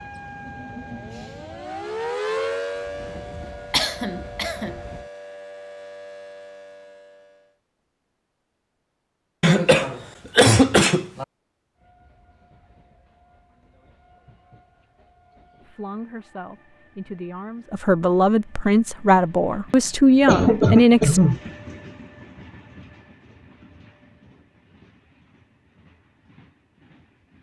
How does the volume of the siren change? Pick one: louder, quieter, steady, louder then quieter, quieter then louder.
louder then quieter.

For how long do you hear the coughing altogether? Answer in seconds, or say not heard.
4 s.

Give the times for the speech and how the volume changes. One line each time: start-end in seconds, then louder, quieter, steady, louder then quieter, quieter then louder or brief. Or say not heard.
15.7-21.2 louder.